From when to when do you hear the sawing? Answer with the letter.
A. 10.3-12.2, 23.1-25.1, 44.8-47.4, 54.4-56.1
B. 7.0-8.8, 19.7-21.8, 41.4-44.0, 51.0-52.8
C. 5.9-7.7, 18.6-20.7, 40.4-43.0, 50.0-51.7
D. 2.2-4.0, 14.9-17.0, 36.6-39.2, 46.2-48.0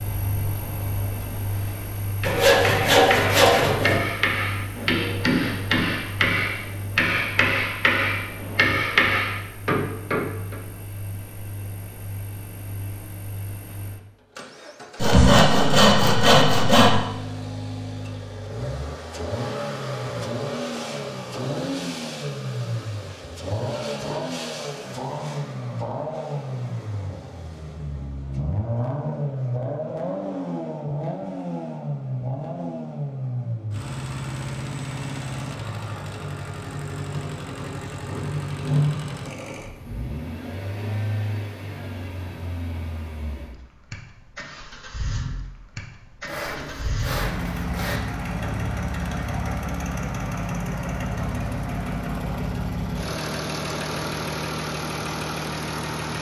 D.